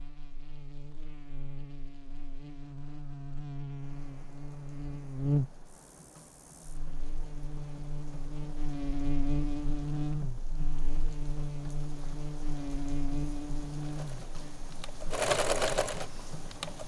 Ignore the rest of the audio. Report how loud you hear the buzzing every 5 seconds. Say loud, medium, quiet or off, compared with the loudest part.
medium, loud, loud, off.